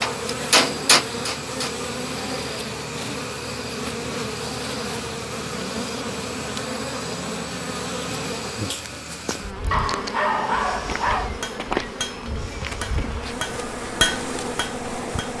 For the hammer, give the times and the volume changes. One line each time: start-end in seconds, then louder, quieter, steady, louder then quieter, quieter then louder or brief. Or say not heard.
0.0-1.8 brief
10.9-15.3 louder then quieter.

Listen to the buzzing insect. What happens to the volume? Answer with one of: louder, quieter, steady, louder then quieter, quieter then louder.
steady.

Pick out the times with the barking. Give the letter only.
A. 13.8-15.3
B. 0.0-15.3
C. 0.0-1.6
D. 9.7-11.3
D.